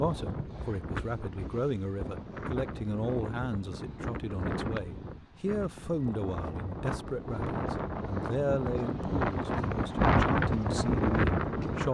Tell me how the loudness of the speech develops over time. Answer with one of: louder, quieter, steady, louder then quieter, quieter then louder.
steady.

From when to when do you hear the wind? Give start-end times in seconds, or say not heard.
0.0-11.8.